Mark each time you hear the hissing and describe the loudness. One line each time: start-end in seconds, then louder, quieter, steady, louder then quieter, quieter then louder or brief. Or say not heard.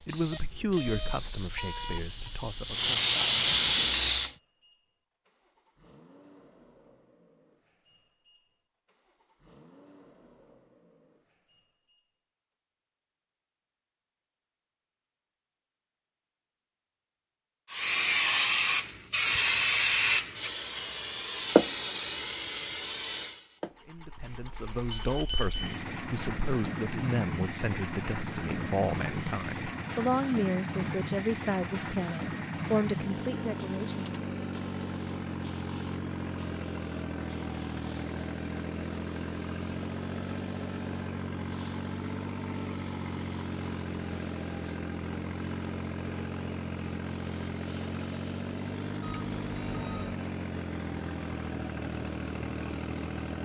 0.0-4.3 louder
17.7-53.2 quieter.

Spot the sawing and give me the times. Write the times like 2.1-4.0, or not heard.
not heard.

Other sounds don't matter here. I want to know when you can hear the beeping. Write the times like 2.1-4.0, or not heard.
0.3-2.3, 24.9-25.9, 49.0-50.1.